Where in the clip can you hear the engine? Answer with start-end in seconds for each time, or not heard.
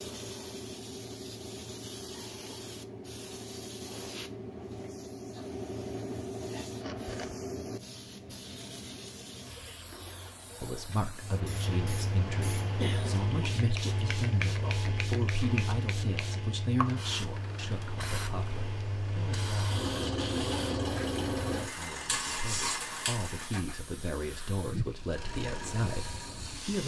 11.2-23.8, 25.0-26.8.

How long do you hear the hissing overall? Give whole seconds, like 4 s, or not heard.
27 s.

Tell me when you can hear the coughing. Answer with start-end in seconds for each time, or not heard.
12.6-13.7.